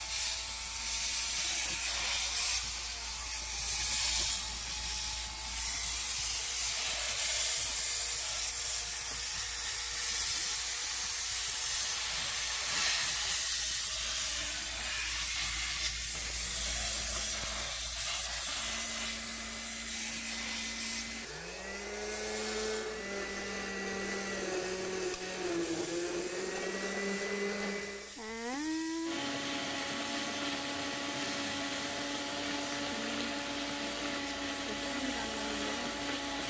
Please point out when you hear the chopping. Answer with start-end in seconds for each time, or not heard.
not heard.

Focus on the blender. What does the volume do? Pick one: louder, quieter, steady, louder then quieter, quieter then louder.
louder.